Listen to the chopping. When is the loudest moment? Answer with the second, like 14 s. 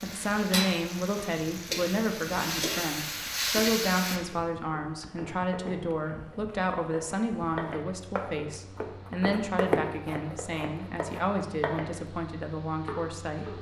10 s.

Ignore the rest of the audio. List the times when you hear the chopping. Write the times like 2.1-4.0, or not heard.
4.3-12.0, 12.7-13.5.